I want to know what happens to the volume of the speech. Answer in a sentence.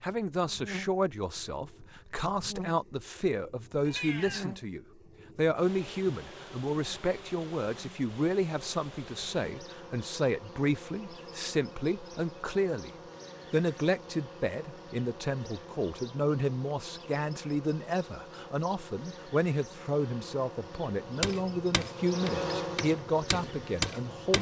The loudness of the speech stays about the same.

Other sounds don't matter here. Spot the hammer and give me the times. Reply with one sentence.
The hammer can be heard from 21.2 to 24.3 s.